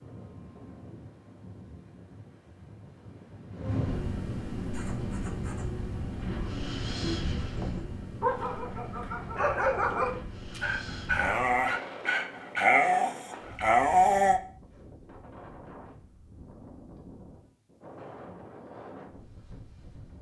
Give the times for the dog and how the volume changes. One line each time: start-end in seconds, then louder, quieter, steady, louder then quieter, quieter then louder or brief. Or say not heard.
4.7-14.4 louder.